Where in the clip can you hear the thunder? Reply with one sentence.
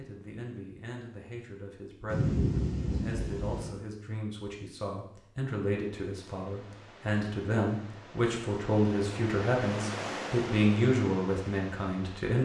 You can hear the thunder from 2.1 to 3.7 s.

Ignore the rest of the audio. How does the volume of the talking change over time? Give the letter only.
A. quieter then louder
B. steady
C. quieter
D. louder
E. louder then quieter
D.